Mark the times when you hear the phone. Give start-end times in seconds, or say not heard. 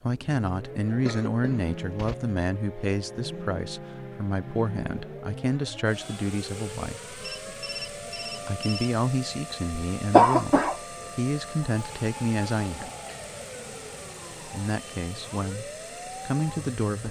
7.2-9.0.